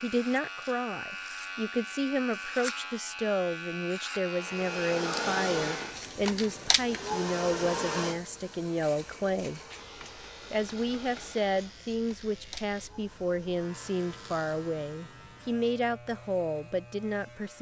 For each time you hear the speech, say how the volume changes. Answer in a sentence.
You can hear the speech from 0.0 to 9.6 s, at a steady volume; and from 10.5 to 17.5 s, at a steady volume.